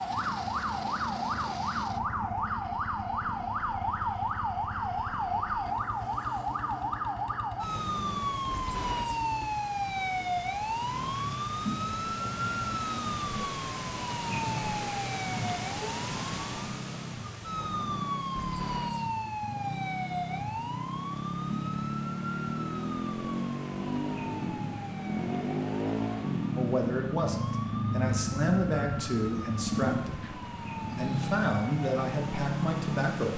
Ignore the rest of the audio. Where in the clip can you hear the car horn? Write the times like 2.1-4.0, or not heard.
not heard.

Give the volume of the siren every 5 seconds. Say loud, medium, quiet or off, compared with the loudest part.
loud, loud, loud, loud, medium, medium, medium.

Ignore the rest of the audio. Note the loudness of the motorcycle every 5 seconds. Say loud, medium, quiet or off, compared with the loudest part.
quiet, quiet, medium, medium, loud, loud, loud.